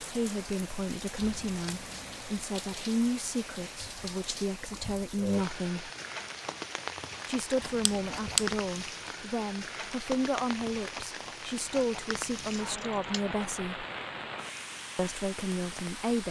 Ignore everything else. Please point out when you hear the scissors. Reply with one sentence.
The scissors can be heard from 1.2 to 2.4 s, from 7.6 to 8.6 s and from 12.1 to 13.4 s.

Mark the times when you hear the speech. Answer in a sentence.
You can hear the speech from 0.0 to 5.9 s, from 7.2 to 13.8 s and from 14.9 to 16.2 s.